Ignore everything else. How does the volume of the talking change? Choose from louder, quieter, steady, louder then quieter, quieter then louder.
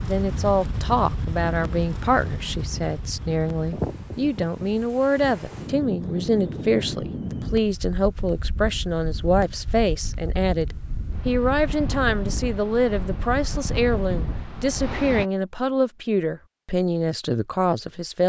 steady.